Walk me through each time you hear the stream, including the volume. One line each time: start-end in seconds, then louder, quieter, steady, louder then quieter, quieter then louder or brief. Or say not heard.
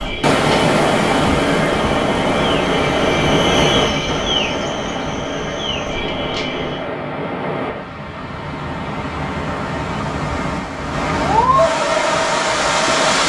0.0-13.2 quieter then louder.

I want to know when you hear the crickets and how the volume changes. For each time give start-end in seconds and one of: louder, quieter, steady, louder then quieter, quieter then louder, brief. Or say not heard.
0.0-6.9 louder then quieter.